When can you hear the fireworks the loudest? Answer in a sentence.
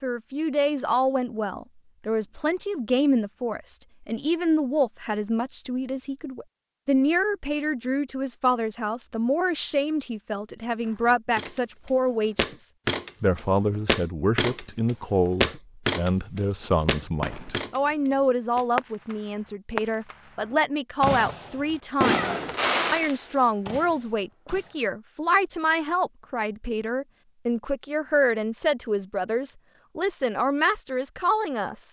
The loudest moment of the fireworks is at 22 seconds.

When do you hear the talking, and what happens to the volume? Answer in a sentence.
You can hear the talking from 0.0 to 31.8 s, at a steady volume.